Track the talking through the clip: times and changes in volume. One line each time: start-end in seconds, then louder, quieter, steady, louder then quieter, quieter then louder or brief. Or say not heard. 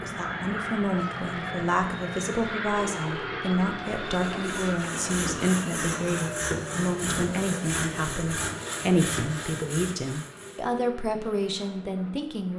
0.0-12.5 steady.